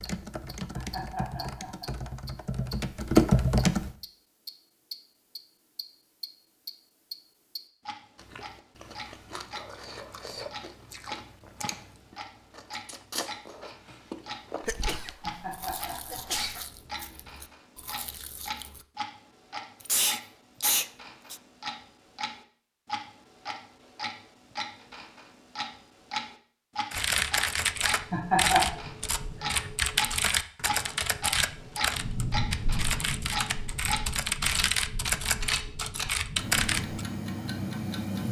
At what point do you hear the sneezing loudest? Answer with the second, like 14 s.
20 s.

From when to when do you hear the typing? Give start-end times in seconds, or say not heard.
0.0-4.0, 26.9-37.0.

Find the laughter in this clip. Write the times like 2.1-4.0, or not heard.
0.7-1.9, 15.2-17.1, 28.1-28.8.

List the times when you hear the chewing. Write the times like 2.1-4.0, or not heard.
8.2-18.9.